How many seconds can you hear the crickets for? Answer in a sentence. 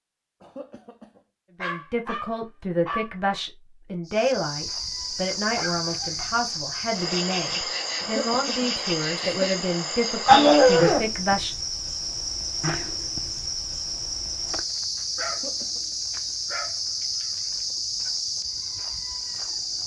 You can hear the crickets for 16 seconds altogether.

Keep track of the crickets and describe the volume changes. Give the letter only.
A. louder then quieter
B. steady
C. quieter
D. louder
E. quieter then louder
B.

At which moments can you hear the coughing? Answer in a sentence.
You can hear the coughing from 0.4 to 1.2 s, from 8.0 to 9.7 s and from 15.2 to 15.8 s.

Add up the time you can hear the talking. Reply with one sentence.
The talking can be heard for 10 seconds in total.